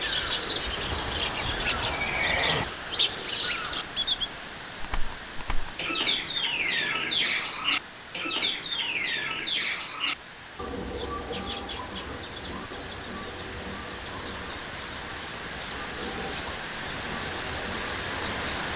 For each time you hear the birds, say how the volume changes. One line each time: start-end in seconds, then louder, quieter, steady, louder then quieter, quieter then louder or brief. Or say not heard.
0.0-18.7 quieter.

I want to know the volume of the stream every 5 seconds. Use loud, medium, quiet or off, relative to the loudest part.
loud, medium, medium, loud.